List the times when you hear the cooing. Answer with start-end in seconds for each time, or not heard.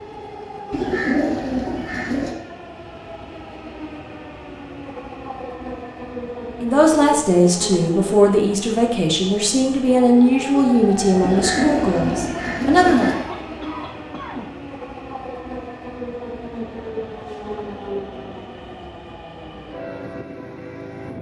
0.7-2.4, 11.2-13.2.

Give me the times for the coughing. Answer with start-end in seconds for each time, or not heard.
13.0-14.5.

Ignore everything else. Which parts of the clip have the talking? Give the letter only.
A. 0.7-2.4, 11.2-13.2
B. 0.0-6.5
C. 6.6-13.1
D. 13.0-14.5
C.